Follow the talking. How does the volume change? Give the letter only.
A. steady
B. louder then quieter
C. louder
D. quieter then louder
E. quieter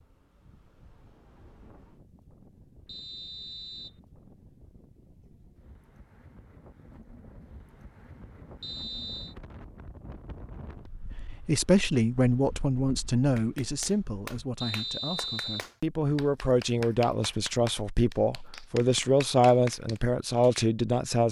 D.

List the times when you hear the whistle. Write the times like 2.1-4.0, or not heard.
2.9-4.0, 8.6-9.3, 14.6-15.7.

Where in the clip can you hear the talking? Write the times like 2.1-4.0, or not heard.
11.4-21.2.